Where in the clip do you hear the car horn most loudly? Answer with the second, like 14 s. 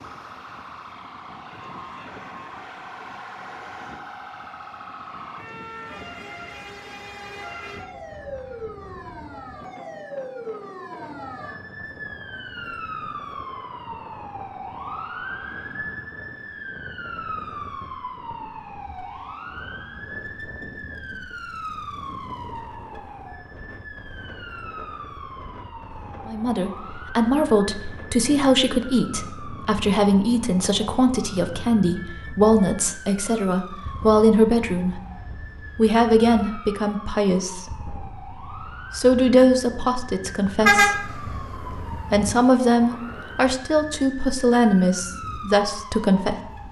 41 s.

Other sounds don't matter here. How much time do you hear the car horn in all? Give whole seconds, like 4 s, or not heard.
2 s.